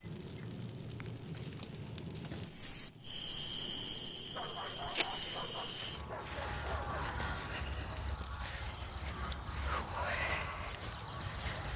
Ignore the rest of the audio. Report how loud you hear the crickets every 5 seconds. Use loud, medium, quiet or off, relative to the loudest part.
medium, loud, loud.